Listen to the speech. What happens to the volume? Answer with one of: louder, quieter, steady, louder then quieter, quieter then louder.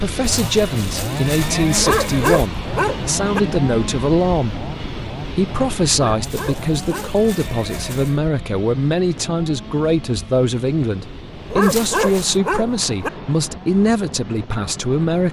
steady.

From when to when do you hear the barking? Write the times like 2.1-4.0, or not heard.
1.8-3.4, 6.0-7.2, 11.5-13.1.